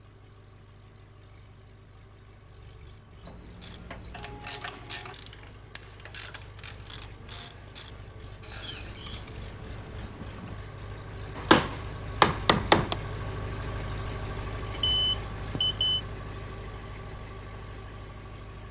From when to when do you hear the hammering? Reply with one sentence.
The hammering can be heard from 11.3 to 12.9 s.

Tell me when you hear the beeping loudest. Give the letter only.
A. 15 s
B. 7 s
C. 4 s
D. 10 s
A.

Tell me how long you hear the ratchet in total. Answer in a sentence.
You can hear the ratchet for 6 seconds altogether.